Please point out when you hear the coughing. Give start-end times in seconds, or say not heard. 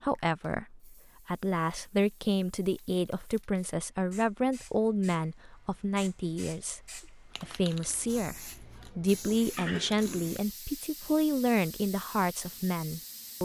9.6-10.4.